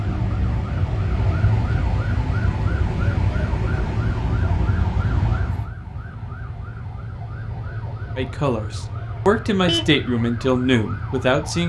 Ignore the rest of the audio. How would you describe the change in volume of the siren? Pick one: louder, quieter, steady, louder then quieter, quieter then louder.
quieter.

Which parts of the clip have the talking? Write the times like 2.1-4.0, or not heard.
8.2-11.6.